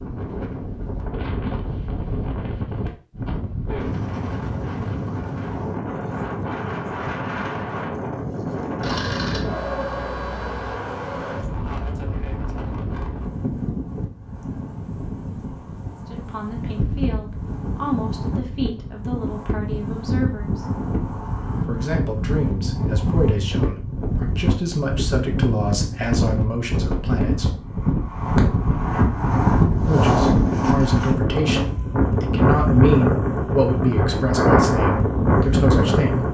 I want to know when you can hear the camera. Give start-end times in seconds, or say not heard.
8.8-10.8.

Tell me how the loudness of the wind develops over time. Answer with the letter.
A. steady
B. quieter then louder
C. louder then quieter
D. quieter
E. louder
E.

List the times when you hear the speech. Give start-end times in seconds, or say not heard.
16.1-20.6, 21.6-27.5, 29.9-36.2.